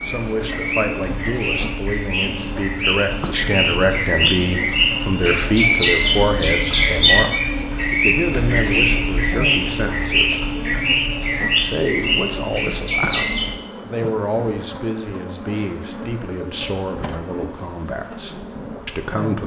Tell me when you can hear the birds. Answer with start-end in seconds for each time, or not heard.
0.0-13.6.